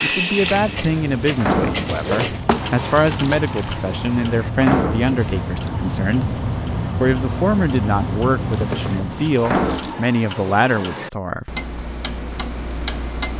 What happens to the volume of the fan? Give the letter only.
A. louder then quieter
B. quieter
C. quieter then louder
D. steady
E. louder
E.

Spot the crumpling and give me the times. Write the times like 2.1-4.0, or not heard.
1.8-3.8, 8.5-9.9.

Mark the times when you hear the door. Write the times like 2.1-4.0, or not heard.
1.4-1.9, 4.5-5.2, 9.4-10.1.